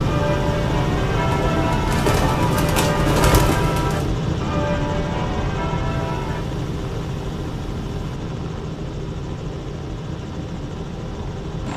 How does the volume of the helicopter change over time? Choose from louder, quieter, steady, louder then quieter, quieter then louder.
quieter.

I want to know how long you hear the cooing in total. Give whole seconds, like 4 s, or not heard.
3 s.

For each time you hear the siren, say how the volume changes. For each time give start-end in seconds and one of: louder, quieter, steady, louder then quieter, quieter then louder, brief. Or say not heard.
not heard.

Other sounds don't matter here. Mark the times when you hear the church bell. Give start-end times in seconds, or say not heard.
0.0-6.5.